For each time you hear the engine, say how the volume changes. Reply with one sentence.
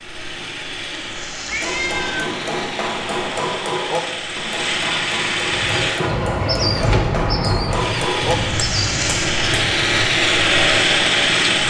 You can hear the engine from 0.0 to 11.6 s, getting louder.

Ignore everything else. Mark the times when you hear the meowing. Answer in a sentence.
The meowing can be heard from 1.4 to 2.3 s.